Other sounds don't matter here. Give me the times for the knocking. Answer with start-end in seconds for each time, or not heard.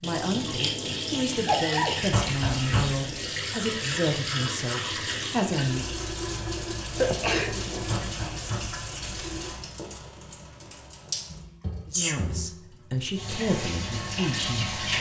2.1-3.0, 7.8-8.8.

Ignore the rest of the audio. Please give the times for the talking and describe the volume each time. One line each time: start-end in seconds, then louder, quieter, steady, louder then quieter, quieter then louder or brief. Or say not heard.
0.0-5.8 steady
11.9-14.8 brief.